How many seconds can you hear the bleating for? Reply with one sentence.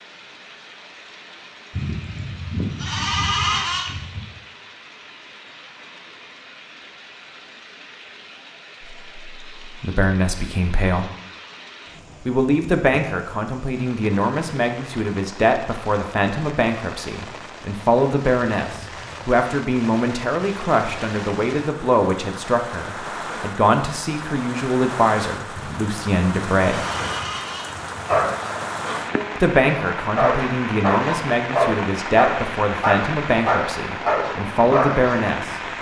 The bleating can be heard for 5 seconds in total.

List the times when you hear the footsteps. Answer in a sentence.
The footsteps can't be heard in this clip.